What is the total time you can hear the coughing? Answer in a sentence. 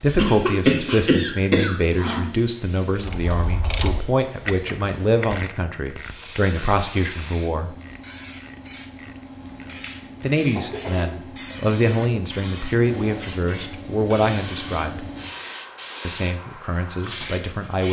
The coughing can be heard for 4 seconds in total.